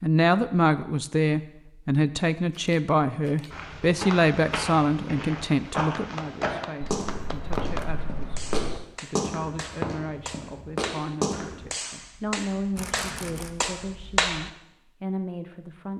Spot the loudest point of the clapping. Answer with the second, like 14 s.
14 s.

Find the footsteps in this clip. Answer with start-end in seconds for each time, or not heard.
3.5-11.7.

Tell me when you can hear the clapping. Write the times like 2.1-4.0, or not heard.
6.0-14.5.